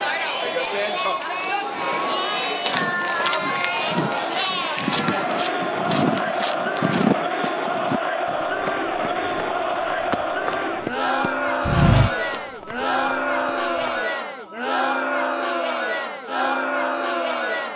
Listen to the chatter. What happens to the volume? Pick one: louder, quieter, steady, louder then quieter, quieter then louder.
steady.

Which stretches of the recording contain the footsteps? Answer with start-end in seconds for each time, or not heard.
2.6-13.9.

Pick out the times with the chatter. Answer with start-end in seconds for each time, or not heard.
0.0-17.7.